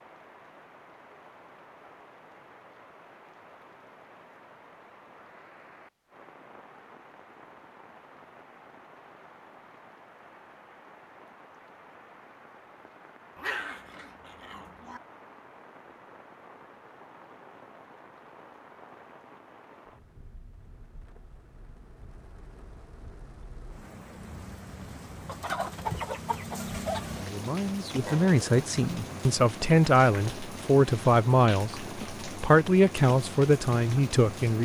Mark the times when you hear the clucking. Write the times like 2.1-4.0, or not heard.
25.2-27.0.